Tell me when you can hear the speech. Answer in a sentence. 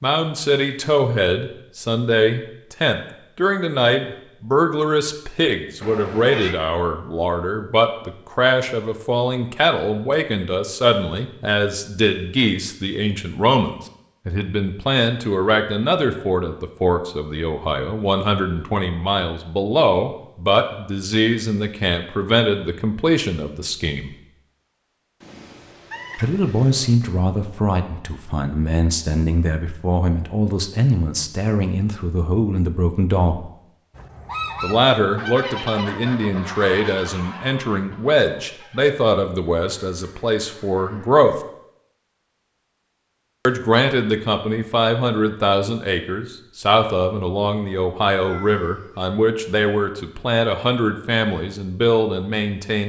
The speech can be heard from 0.0 to 24.1 s, from 26.1 to 33.5 s, from 34.6 to 41.4 s and from 43.5 to 52.8 s.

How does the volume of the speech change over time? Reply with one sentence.
The volume of the speech stays about the same.